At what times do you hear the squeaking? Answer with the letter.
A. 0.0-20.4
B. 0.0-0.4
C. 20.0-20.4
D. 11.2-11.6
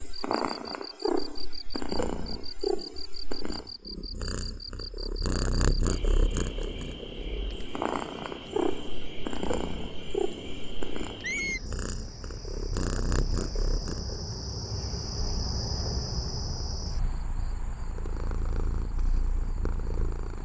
D.